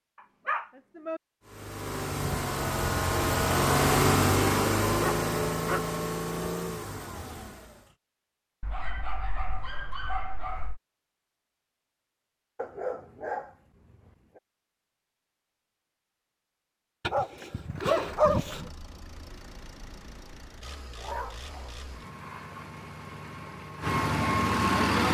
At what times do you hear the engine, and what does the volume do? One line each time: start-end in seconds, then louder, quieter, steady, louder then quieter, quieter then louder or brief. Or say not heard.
1.4-8.0 louder then quieter
17.6-25.0 louder.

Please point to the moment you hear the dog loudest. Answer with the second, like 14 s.
18 s.